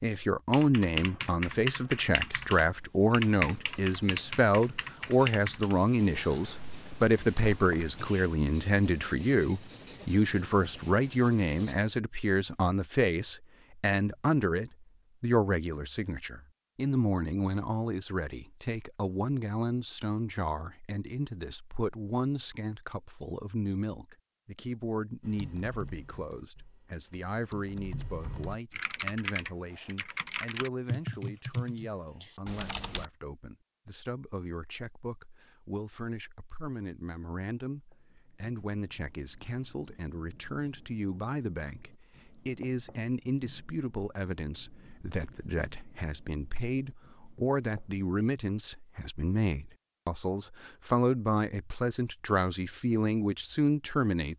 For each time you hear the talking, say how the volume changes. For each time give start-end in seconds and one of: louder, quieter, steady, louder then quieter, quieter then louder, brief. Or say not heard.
0.0-54.3 quieter then louder.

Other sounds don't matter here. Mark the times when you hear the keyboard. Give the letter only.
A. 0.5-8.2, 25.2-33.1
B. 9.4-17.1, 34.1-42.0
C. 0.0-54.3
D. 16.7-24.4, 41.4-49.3
A.